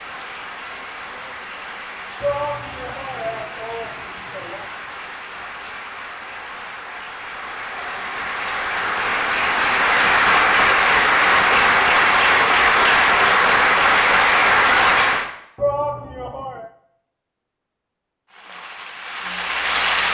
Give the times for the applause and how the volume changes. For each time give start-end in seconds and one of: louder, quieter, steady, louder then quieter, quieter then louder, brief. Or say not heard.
0.0-15.3 louder
18.2-20.0 brief.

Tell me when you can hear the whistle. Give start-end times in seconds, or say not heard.
not heard.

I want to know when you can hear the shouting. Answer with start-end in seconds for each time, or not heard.
2.2-4.7, 15.6-16.7.